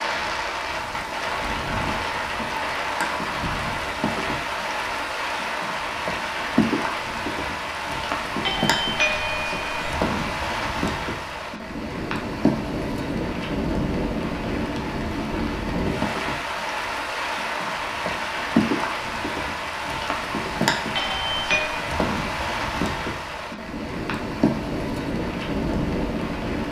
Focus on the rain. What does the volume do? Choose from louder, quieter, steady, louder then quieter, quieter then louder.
steady.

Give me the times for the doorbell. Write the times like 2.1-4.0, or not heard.
8.4-9.9, 20.9-21.8.